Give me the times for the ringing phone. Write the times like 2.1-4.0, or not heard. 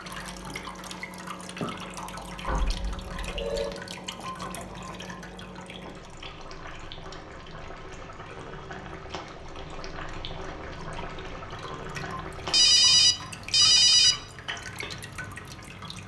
2.5-3.8, 12.5-14.2.